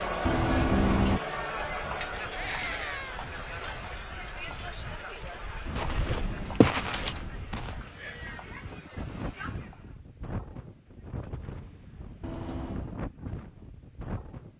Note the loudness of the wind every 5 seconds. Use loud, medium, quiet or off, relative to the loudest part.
medium, loud, loud.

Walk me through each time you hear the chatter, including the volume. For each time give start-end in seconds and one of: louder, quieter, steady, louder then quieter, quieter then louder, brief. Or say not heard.
0.0-10.0 quieter.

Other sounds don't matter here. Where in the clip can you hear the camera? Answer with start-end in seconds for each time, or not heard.
0.2-1.2, 5.7-7.5, 12.2-12.9.